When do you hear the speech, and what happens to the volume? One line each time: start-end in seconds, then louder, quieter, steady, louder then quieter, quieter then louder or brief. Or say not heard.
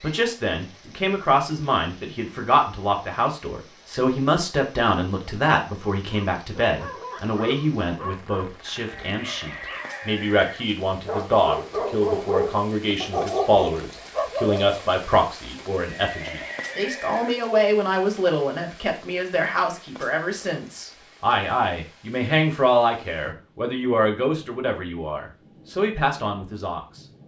0.0-27.0 steady.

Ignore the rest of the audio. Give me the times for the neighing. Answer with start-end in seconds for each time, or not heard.
9.1-10.2, 15.8-17.4.